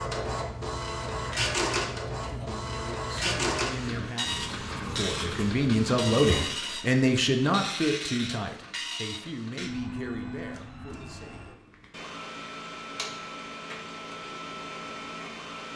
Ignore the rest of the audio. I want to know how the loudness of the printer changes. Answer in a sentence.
The loudness of the printer goes down.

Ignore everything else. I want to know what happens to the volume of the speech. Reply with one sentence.
The volume of the speech goes up, then down.